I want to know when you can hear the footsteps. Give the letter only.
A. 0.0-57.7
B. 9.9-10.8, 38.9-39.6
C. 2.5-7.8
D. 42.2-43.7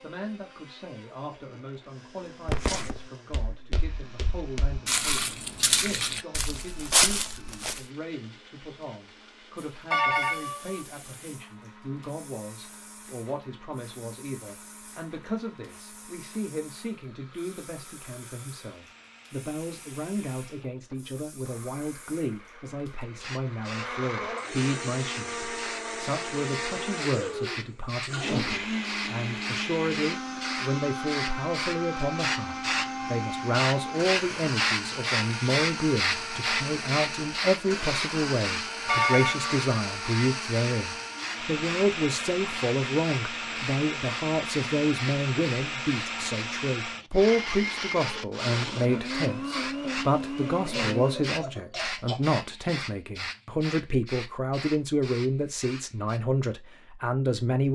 C.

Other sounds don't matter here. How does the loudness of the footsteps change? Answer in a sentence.
The loudness of the footsteps goes up.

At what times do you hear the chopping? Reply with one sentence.
The chopping can't be heard in this clip.